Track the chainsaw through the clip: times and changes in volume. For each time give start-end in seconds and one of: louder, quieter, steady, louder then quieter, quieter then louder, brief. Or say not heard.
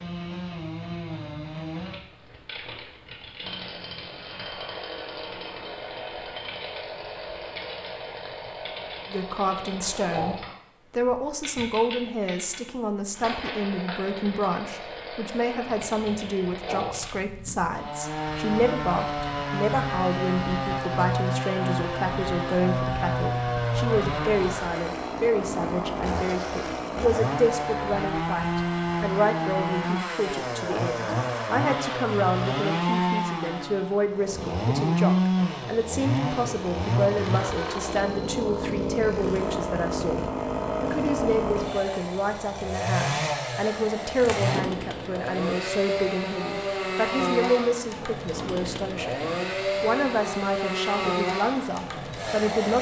0.0-52.7 louder.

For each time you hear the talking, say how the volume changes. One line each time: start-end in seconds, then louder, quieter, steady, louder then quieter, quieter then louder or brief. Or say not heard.
9.1-49.1 steady
49.8-52.7 brief.